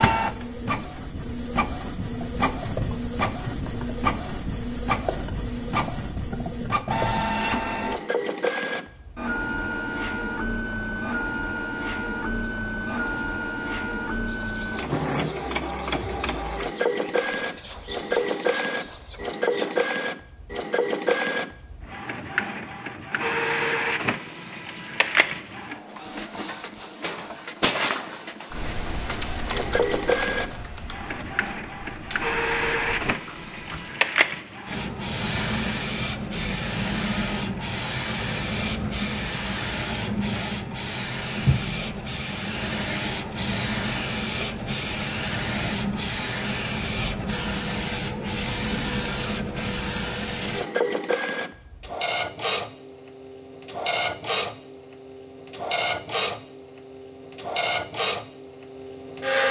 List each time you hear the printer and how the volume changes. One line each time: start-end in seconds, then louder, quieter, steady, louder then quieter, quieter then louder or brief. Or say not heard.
0.0-59.4 steady.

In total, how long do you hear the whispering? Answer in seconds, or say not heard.
8 s.